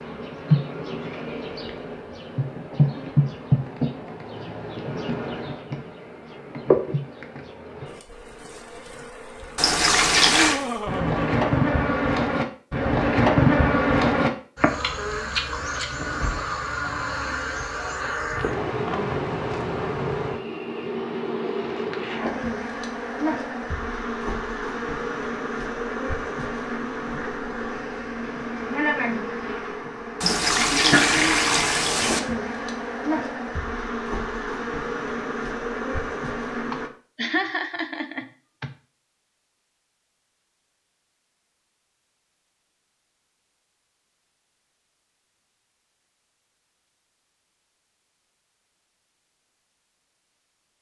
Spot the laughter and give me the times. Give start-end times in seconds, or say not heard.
10.2-11.6, 36.7-38.7.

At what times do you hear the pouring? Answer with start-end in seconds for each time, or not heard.
9.6-10.6, 30.2-32.2.